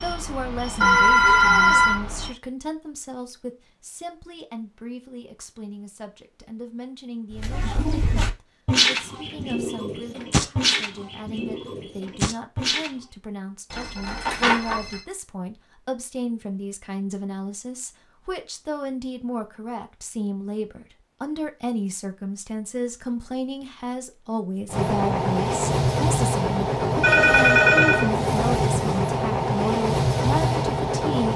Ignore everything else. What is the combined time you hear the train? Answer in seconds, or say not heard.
9 s.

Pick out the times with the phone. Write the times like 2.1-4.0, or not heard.
0.8-2.0, 13.7-15.0, 27.0-28.1.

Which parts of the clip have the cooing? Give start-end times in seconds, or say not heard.
7.3-12.9.